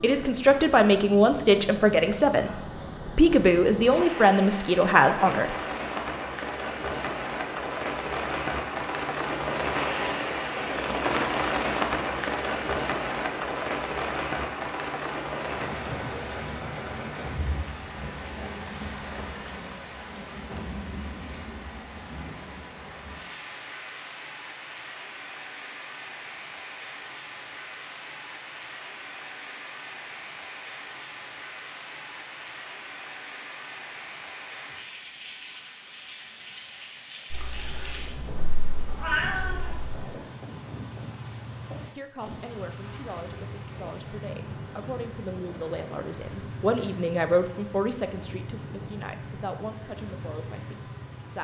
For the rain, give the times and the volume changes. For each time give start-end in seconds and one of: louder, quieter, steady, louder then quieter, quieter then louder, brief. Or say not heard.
0.0-51.3 quieter.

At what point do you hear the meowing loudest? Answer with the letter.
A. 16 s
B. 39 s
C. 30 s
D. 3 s
B.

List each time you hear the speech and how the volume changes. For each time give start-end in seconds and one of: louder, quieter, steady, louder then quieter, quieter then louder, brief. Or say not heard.
0.0-5.5 steady
42.0-51.3 louder then quieter.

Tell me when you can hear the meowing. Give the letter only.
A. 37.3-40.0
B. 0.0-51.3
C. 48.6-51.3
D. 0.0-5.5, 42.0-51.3
A.